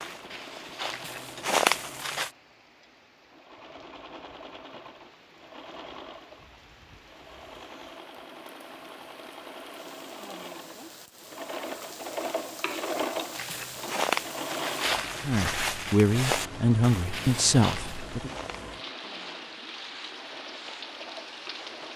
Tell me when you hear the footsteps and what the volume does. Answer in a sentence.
The footsteps can be heard briefly from 0.0 to 2.3 s; and from 13.3 to 21.9 s, getting quieter.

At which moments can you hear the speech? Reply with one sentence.
You can hear the speech from 15.2 to 18.3 s.